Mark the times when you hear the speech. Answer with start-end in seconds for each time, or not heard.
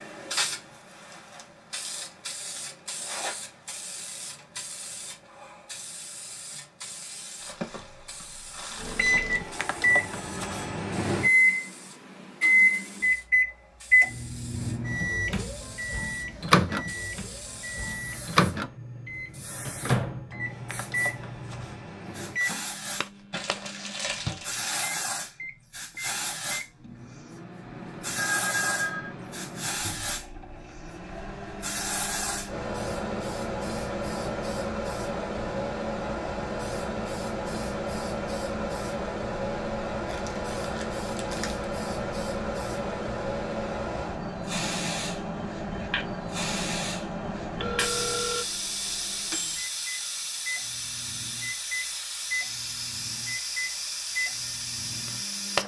not heard.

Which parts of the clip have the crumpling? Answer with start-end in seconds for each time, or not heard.
7.4-9.6, 23.3-24.9, 40.0-41.6.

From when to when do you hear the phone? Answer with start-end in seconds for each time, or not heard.
10.4-10.8, 28.1-29.1, 47.6-48.5.